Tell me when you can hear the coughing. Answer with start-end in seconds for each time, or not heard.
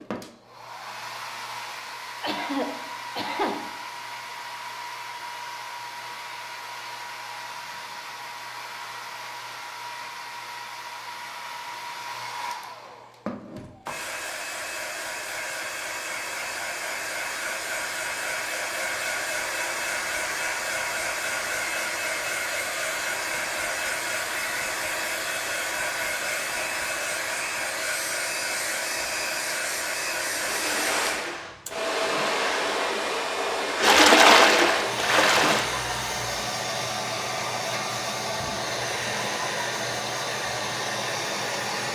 2.2-3.6.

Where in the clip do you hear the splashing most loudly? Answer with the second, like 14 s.
34 s.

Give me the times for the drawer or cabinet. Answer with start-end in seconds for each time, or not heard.
not heard.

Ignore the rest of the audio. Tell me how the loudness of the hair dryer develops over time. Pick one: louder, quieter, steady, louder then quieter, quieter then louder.
louder.